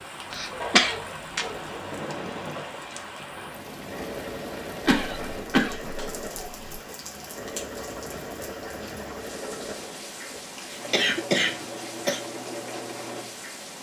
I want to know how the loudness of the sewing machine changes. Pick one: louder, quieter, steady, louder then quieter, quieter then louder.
steady.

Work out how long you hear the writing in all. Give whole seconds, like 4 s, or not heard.
not heard.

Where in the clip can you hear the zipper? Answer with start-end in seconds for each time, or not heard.
not heard.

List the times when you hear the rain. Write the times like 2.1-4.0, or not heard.
0.0-13.7.